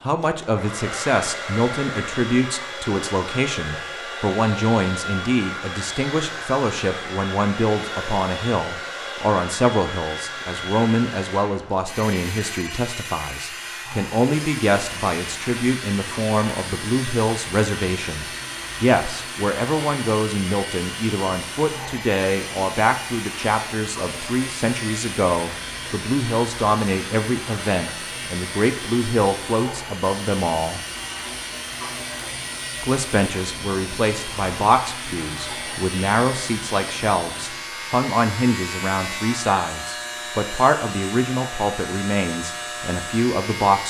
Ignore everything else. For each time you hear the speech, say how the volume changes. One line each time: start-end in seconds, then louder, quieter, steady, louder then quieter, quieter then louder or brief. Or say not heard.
0.0-30.8 steady
32.8-43.8 steady.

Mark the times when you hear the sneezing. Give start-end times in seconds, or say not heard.
not heard.